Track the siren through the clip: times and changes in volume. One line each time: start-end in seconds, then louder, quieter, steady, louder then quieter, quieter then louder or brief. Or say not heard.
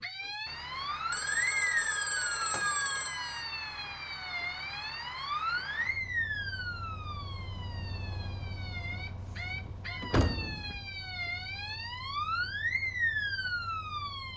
0.0-14.3 quieter then louder.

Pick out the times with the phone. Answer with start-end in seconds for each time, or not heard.
1.1-3.5.